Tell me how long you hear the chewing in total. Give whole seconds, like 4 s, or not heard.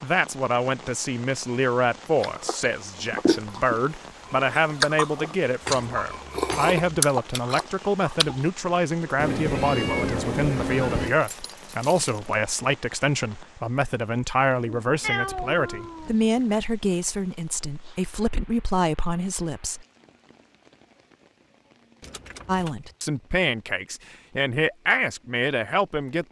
6 s.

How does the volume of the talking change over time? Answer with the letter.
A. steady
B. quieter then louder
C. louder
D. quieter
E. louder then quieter
A.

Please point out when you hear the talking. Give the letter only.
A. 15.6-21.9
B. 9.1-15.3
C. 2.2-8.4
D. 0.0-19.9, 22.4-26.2
D.